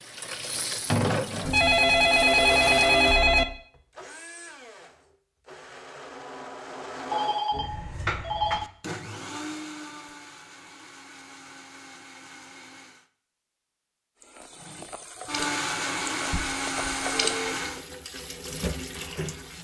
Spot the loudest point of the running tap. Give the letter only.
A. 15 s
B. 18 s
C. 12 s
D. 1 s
D.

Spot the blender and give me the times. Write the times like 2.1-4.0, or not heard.
3.7-13.1, 14.6-17.9.